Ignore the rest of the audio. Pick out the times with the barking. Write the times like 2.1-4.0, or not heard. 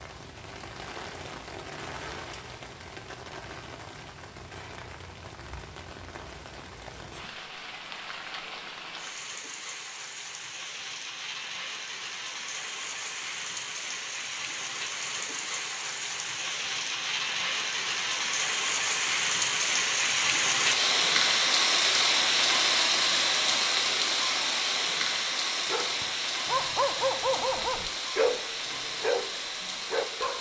25.6-29.2, 29.9-30.3.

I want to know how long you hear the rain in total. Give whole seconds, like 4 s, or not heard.
30 s.